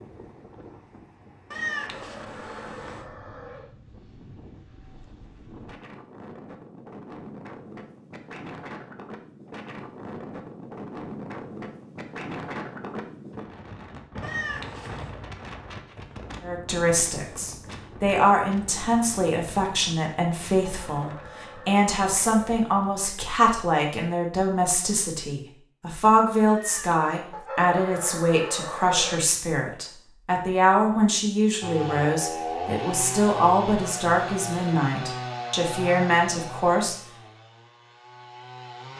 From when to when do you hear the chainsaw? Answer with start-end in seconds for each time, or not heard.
31.6-38.9.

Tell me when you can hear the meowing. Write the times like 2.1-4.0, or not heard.
1.5-3.0, 14.2-15.2, 26.5-27.2.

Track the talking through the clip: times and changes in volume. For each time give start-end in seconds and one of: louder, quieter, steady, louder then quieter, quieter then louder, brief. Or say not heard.
16.4-37.0 steady.